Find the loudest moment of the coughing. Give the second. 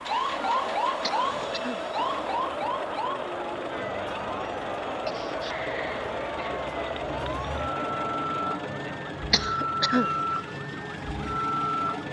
10 s.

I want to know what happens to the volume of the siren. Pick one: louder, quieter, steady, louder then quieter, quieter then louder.
quieter then louder.